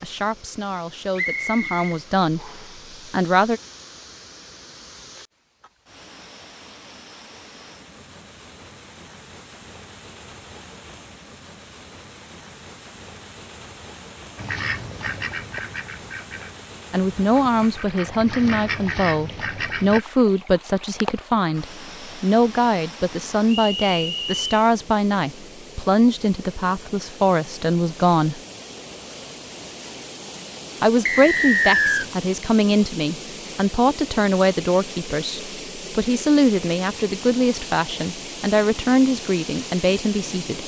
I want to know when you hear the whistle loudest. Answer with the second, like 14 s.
32 s.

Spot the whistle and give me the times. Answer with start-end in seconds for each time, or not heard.
1.1-2.6, 23.4-24.4, 31.1-32.0.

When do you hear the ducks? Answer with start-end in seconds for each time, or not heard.
14.3-20.1.